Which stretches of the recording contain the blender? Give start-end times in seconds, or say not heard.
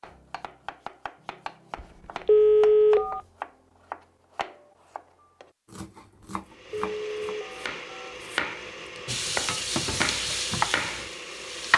6.5-11.7.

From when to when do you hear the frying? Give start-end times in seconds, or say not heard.
9.1-11.7.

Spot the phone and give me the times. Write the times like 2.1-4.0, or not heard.
1.8-3.2, 6.2-8.2.